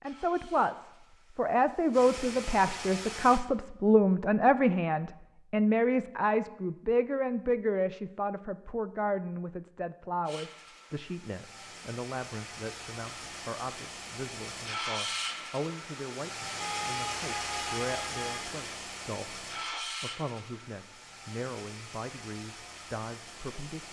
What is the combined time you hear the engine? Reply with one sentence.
The engine can be heard for 17 seconds in total.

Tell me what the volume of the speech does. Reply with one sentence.
The loudness of the speech goes down.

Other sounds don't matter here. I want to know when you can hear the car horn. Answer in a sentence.
You can hear the car horn from 16.6 to 18.4 s.